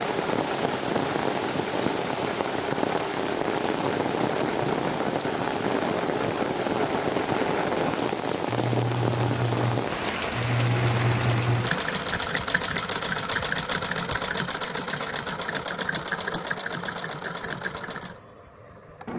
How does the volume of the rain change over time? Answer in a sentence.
The loudness of the rain stays about the same.